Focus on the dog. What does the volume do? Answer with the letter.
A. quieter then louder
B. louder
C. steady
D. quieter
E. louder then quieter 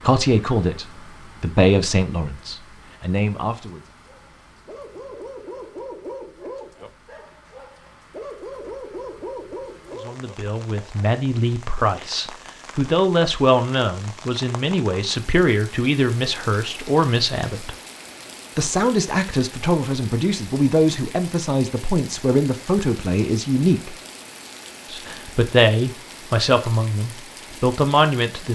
A.